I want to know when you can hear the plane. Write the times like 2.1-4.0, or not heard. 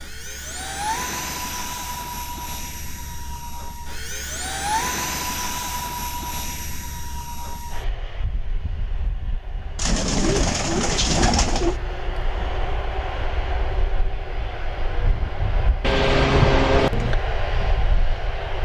0.0-18.5.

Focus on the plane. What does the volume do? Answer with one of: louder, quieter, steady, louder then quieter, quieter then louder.
quieter then louder.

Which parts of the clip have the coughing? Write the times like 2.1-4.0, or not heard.
15.8-17.1.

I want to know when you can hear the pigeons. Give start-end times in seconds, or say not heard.
9.8-11.8.